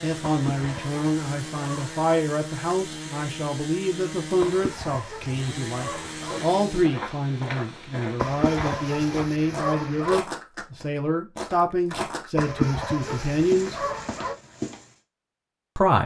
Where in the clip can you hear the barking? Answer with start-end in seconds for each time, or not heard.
0.2-2.0, 4.4-6.4, 8.2-10.2, 12.3-14.3.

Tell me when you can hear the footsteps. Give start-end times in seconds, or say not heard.
6.1-14.9.